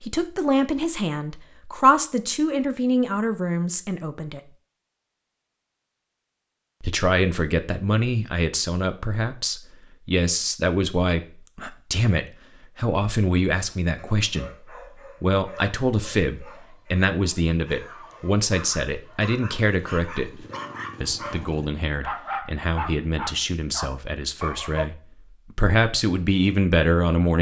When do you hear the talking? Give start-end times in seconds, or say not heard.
0.0-4.4, 6.8-14.5, 15.2-27.3.